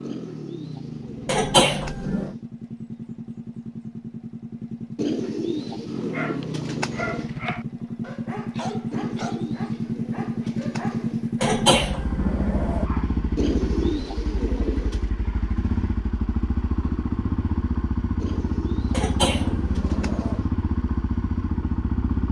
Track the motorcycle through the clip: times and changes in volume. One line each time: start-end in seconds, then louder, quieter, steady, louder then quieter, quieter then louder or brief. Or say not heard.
0.0-22.2 louder.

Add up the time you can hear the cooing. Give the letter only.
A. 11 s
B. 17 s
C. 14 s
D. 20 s
A.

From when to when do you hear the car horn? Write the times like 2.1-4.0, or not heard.
not heard.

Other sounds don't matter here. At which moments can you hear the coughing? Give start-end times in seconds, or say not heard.
1.2-2.4, 11.4-12.8, 18.9-20.4.